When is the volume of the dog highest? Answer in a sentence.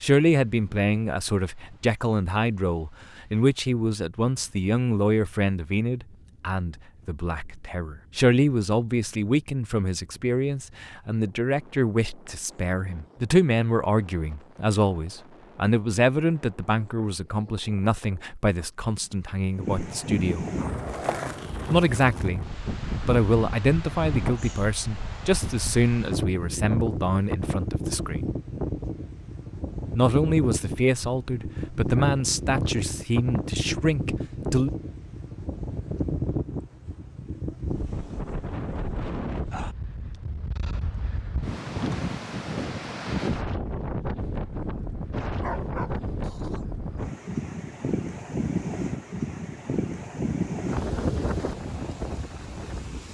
The loudest moment of the dog is at 46 seconds.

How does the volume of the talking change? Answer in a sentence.
The loudness of the talking stays about the same.